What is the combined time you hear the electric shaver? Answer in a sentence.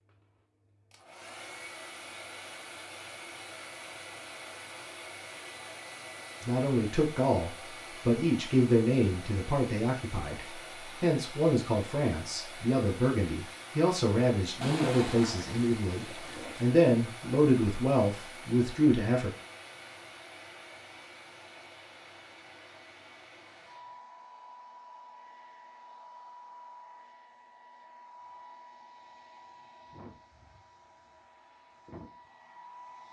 You can't hear the electric shaver here.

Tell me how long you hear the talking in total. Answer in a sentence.
The talking can be heard for 13 seconds in total.